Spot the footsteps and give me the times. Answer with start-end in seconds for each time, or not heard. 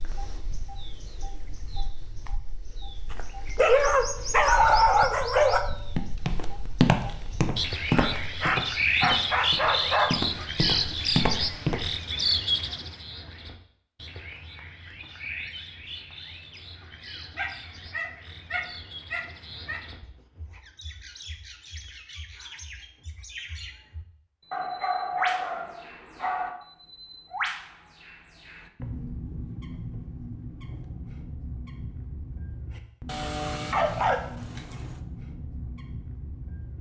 6.0-11.9.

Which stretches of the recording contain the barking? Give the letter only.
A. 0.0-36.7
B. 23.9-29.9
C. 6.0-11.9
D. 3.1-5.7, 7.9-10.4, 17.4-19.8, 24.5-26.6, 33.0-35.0
D.